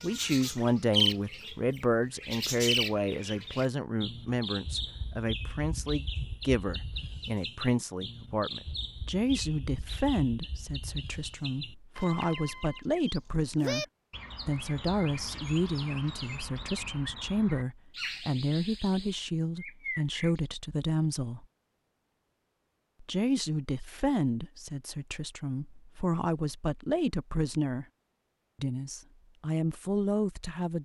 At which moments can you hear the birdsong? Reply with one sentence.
The birdsong can be heard from 0.0 to 20.4 s.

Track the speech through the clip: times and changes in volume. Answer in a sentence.
The speech can be heard from 0.0 to 21.4 s, at a steady volume; from 23.0 to 27.9 s, getting quieter then louder; and briefly from 28.6 to 30.7 s.